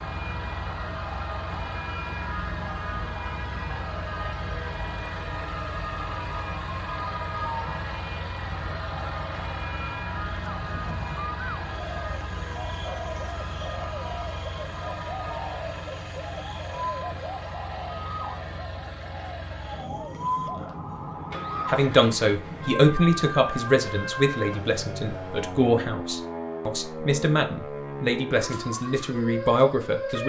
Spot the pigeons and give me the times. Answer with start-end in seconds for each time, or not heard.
10.5-20.9.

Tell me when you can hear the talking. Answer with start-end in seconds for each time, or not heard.
21.6-30.2.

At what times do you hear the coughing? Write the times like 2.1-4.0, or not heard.
not heard.